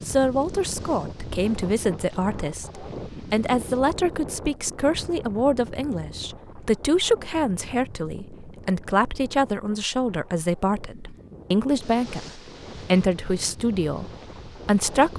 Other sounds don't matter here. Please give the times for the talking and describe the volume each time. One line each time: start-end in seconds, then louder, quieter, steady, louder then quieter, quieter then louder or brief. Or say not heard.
0.1-15.1 steady.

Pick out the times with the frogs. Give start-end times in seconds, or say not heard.
not heard.